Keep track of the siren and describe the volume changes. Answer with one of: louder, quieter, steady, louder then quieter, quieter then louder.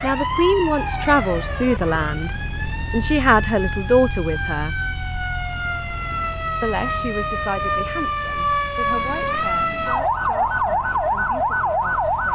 louder.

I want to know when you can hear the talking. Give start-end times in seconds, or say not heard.
0.0-4.8, 6.6-12.3.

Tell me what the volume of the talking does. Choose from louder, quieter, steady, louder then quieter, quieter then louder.
quieter.